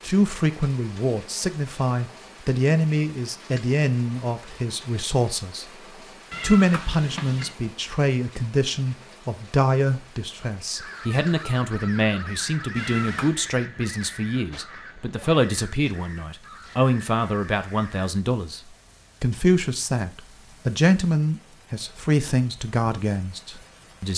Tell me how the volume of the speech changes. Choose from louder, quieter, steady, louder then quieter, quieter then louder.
steady.